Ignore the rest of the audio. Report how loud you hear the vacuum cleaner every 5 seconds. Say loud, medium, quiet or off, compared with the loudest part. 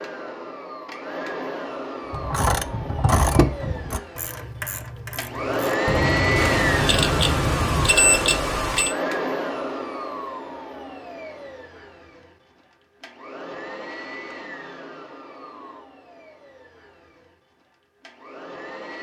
medium, loud, quiet, quiet.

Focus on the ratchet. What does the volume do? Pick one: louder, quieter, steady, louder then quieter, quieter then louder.
quieter then louder.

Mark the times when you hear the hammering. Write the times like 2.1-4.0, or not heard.
not heard.